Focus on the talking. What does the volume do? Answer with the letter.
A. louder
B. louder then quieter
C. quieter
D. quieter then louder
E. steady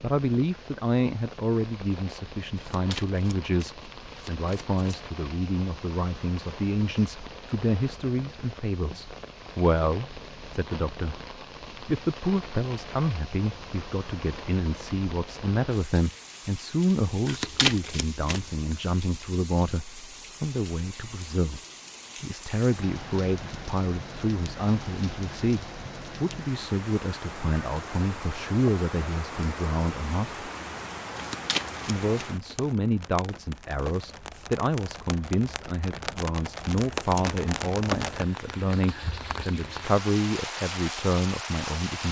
E.